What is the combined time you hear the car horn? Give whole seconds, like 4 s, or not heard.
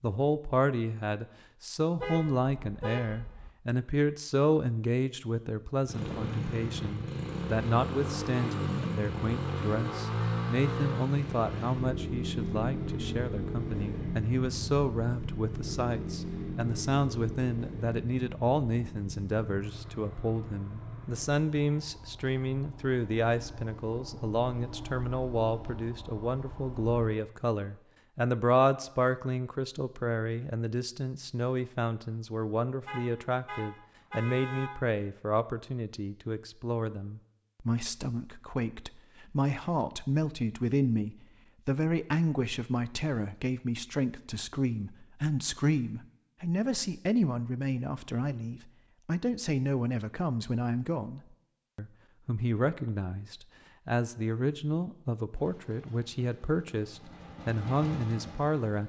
3 s.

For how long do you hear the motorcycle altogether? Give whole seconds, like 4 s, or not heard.
25 s.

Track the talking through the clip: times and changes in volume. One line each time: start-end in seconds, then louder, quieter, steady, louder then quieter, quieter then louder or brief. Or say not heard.
0.0-58.8 steady.